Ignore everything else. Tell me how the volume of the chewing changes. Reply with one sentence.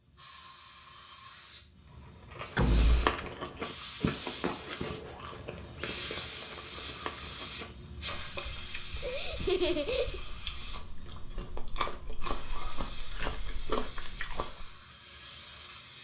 The loudness of the chewing goes down, then up.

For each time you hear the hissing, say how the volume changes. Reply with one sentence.
You can hear the hissing from 0.0 to 16.0 s, getting louder then quieter.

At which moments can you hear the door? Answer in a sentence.
The door can be heard from 2.5 to 3.1 s.